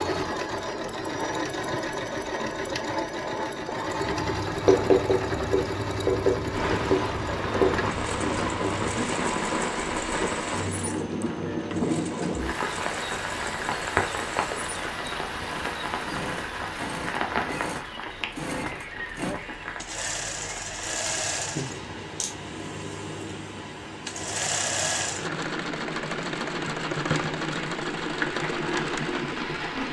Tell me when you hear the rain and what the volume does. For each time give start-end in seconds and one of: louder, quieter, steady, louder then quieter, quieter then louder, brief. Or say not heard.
6.5-29.8 quieter.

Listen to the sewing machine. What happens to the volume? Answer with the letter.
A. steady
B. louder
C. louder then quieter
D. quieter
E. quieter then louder
E.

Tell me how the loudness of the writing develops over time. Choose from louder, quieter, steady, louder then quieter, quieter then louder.
quieter.